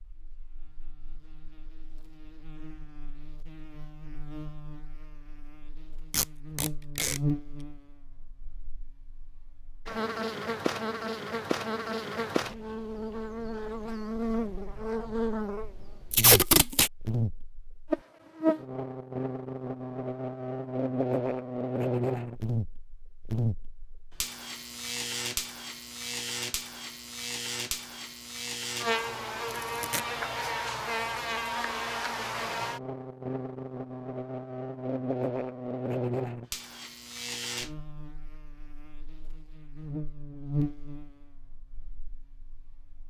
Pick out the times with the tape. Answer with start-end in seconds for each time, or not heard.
6.1-7.2, 16.1-16.9, 29.5-30.0.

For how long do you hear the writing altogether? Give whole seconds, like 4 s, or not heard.
not heard.